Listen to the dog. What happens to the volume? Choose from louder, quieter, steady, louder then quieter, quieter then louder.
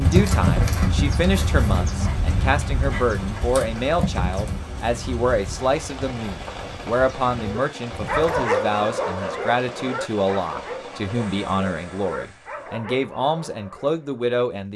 quieter.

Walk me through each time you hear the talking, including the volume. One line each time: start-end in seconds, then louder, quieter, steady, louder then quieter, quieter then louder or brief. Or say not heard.
0.0-14.7 steady.